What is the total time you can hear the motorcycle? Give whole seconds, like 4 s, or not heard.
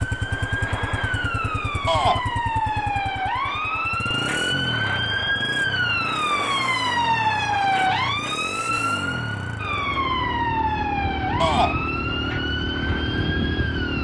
14 s.